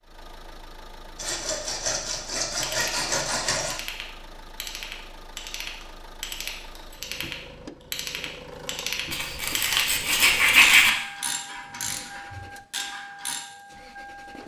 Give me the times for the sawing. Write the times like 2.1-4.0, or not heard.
1.1-3.8, 9.1-10.9.